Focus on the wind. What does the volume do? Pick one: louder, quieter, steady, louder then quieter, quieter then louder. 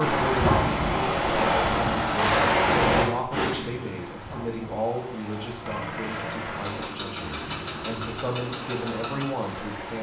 quieter.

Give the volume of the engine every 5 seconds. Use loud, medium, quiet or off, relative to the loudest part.
off, loud.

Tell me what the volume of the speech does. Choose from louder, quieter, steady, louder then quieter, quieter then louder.
quieter then louder.